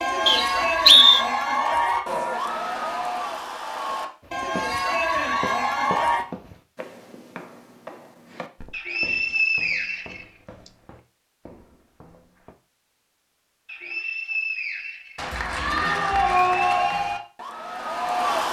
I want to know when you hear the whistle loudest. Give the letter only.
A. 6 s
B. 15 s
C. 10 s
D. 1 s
D.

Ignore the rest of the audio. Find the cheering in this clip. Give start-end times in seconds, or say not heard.
0.0-6.2, 15.2-18.4.